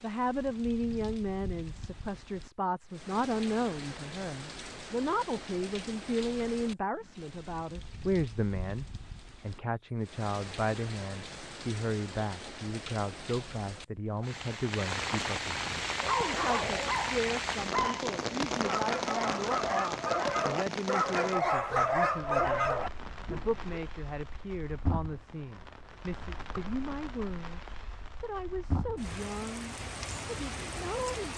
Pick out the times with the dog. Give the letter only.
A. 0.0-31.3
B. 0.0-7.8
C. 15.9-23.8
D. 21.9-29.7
C.